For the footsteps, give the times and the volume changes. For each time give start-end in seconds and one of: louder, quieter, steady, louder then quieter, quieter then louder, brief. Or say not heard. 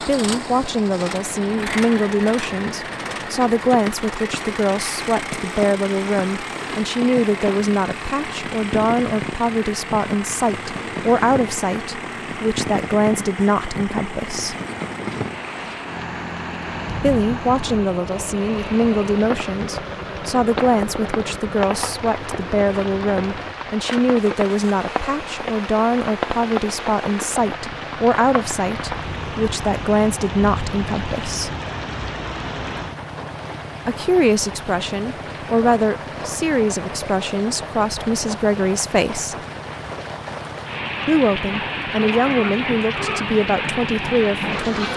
not heard.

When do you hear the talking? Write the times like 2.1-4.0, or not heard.
0.1-14.6, 16.9-31.5, 33.9-39.4, 41.0-44.9.